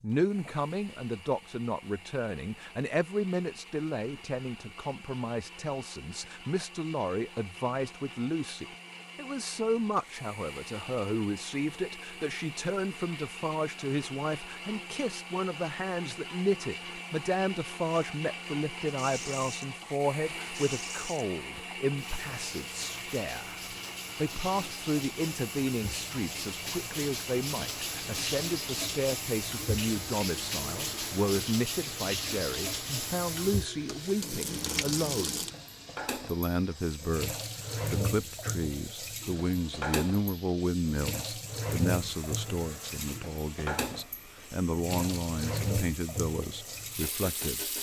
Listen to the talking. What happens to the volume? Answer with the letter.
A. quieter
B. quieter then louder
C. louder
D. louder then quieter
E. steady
E.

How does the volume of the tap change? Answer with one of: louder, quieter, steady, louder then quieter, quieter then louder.
louder.